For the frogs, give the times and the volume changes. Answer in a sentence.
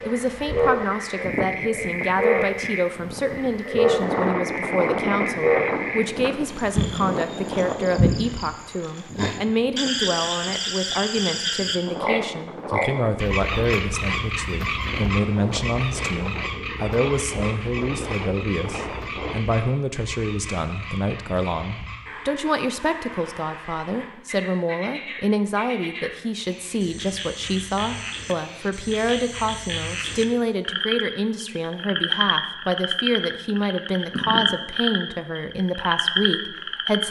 You can hear the frogs from 0.0 to 37.0 s, getting quieter then louder.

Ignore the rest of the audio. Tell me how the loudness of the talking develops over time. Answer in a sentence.
The volume of the talking stays about the same.